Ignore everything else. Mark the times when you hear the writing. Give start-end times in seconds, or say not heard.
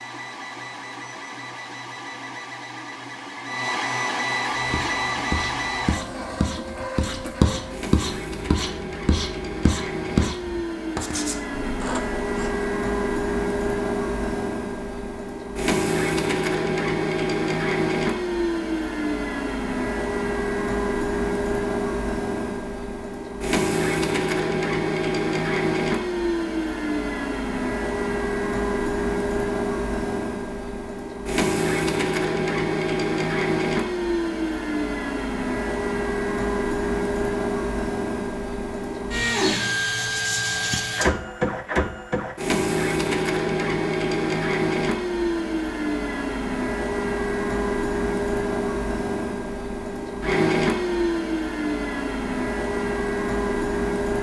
4.5-12.7.